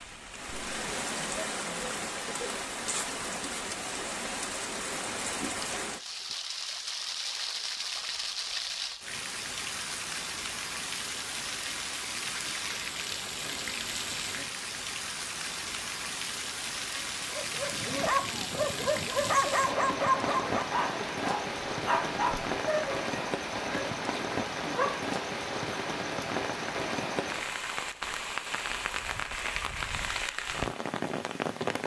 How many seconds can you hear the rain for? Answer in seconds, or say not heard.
32 s.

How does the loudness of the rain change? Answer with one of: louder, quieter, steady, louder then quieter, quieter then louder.
steady.